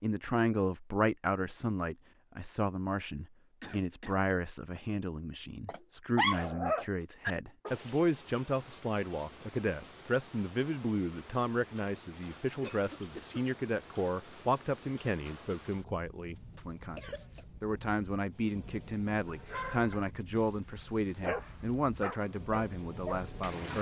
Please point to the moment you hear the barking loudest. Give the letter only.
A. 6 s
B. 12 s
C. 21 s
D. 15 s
A.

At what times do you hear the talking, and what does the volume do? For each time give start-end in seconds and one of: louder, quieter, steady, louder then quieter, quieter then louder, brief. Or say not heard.
0.0-23.7 steady.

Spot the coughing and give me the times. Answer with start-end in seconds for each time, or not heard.
3.6-4.2, 12.6-13.4, 16.8-17.4.